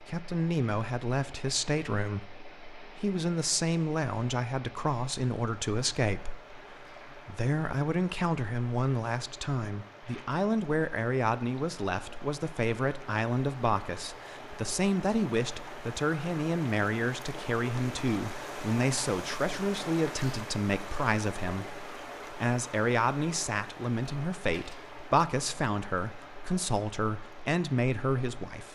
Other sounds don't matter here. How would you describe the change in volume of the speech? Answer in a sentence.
The loudness of the speech stays about the same.